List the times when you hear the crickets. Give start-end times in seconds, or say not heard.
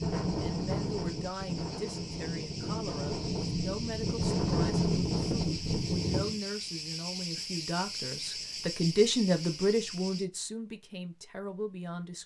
0.0-10.2.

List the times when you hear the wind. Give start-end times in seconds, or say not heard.
0.0-6.4.